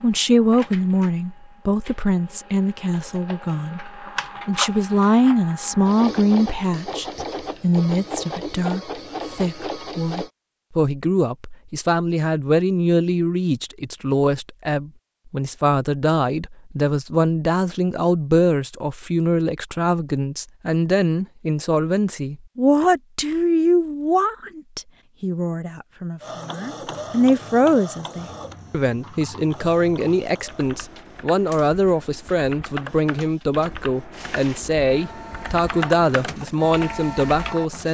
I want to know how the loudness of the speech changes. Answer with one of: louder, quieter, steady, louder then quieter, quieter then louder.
steady.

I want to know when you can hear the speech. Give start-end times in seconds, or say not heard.
0.0-37.8.